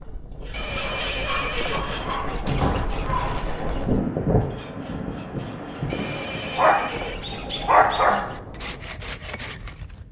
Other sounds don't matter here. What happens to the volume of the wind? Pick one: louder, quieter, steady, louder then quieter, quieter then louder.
louder then quieter.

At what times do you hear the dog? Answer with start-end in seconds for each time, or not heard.
0.8-3.5, 6.5-8.2.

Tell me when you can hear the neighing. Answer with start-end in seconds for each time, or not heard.
0.5-1.8, 5.8-7.2.